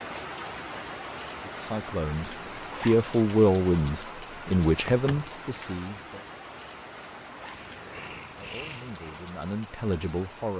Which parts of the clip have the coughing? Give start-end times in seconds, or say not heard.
not heard.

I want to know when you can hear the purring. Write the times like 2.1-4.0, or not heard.
7.3-9.2.